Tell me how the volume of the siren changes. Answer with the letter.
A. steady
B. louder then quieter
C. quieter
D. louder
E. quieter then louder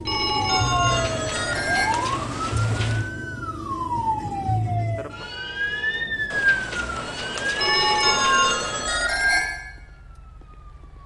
C.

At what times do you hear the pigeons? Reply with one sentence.
You can hear the pigeons from 0.8 to 3.1 s and from 6.3 to 8.9 s.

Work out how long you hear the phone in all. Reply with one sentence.
You can hear the phone for 4 seconds altogether.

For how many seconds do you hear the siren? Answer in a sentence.
The siren can be heard for 11 seconds in total.